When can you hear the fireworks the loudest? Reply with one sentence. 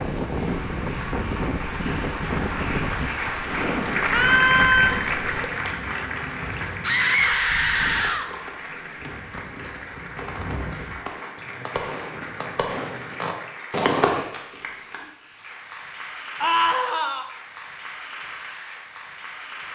The loudest moment of the fireworks is at 14 seconds.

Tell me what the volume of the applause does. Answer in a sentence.
The volume of the applause goes down.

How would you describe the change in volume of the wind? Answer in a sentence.
The volume of the wind goes down.